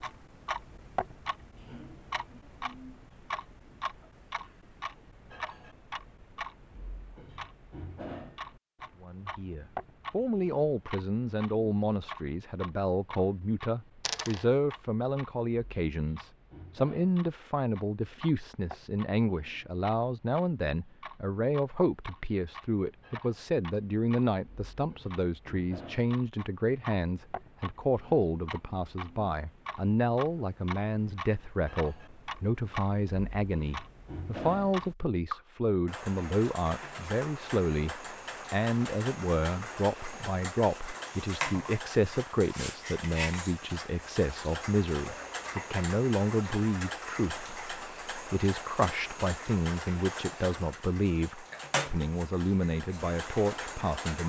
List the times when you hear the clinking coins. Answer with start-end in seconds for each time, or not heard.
14.0-14.4.